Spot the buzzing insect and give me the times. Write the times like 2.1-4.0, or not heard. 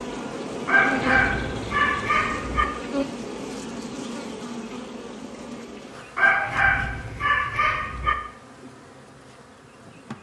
0.0-10.1.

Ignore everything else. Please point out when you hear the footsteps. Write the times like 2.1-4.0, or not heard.
not heard.